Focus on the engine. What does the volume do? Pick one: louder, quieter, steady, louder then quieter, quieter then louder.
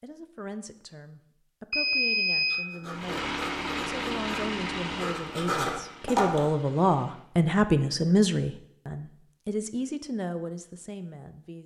quieter.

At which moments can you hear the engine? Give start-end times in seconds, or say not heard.
2.9-7.2.